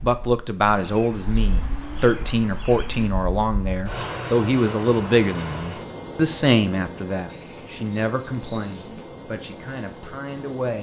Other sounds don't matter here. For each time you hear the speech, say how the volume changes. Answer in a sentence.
You can hear the speech from 0.0 to 10.7 s, getting quieter.